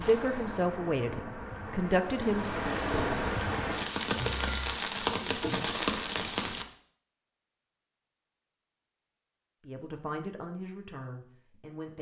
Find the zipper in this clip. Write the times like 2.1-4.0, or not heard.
not heard.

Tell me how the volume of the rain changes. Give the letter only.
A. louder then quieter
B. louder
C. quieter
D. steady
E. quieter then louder
B.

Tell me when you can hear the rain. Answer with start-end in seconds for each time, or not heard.
0.0-6.7.